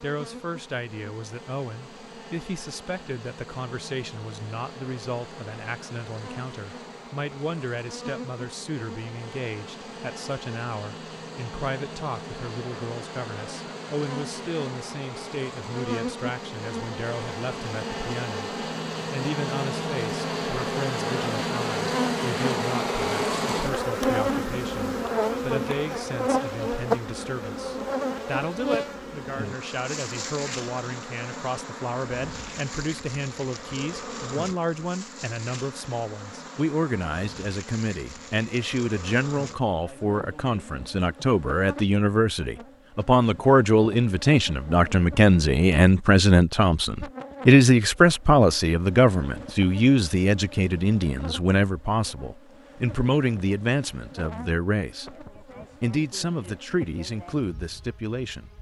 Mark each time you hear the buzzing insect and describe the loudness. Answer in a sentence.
You can hear the buzzing insect from 0.0 to 58.5 s, getting louder then quieter.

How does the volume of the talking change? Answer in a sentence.
The loudness of the talking goes up.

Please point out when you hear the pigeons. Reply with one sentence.
The pigeons can't be heard in this clip.